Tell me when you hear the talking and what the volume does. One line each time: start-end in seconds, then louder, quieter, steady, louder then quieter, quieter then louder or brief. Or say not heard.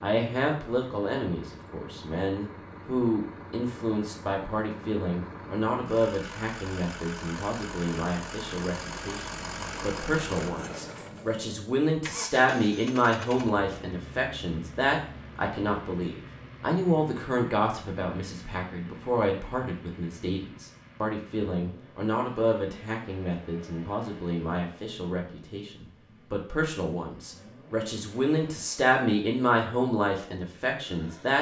0.0-31.3 steady.